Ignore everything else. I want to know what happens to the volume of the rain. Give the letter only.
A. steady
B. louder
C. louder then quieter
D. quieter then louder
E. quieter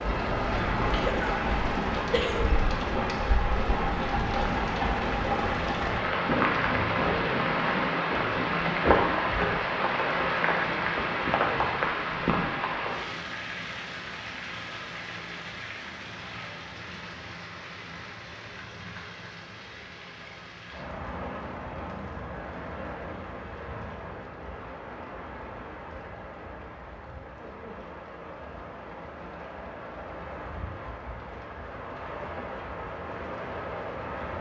E.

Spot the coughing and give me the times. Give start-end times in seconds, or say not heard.
0.9-1.4, 2.1-2.5.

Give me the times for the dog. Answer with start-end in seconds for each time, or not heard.
not heard.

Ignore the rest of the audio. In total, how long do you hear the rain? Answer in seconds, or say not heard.
34 s.